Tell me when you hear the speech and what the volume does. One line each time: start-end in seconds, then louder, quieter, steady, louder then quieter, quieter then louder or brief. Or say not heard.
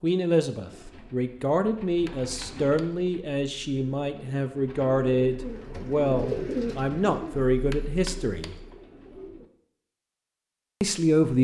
0.0-8.6 steady
10.8-11.3 brief.